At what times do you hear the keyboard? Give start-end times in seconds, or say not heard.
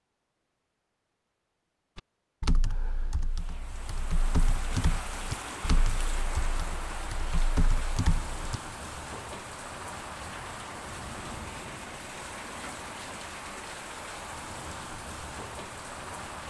1.9-8.6.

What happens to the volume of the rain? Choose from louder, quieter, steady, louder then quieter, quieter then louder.
steady.